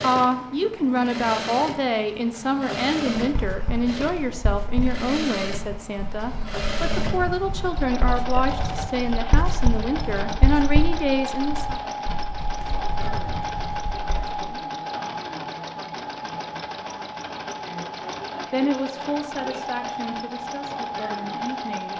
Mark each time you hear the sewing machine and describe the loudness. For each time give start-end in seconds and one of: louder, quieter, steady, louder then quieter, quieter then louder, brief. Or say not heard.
0.0-21.9 steady.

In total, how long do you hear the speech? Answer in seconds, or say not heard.
15 s.